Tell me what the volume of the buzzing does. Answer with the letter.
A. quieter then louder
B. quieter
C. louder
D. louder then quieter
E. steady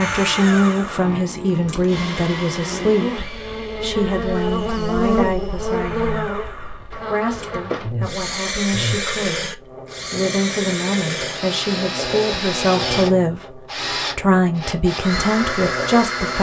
D.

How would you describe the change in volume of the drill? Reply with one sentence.
The volume of the drill goes down, then up.